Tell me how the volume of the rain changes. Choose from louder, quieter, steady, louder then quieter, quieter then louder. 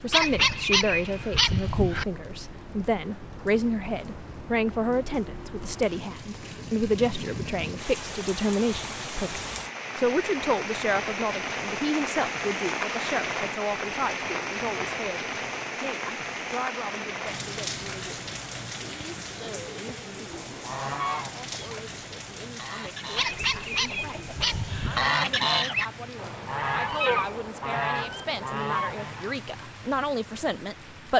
louder then quieter.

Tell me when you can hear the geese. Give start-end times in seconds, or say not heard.
20.2-29.4.